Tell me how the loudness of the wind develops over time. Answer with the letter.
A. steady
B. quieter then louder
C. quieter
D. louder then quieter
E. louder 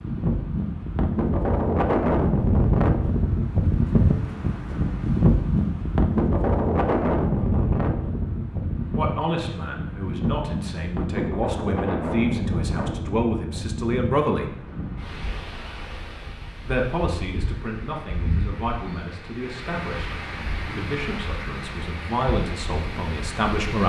C.